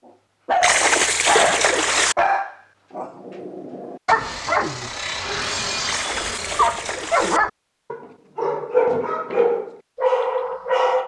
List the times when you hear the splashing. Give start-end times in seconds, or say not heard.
0.6-2.1, 5.8-7.4.